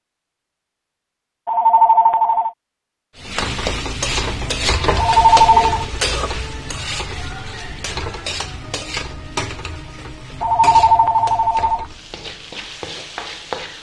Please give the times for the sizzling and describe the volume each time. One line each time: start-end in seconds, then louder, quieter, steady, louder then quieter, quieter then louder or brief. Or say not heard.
3.1-13.7 quieter.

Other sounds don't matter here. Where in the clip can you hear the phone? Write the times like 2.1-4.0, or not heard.
1.4-2.5, 5.0-5.8, 10.4-11.8.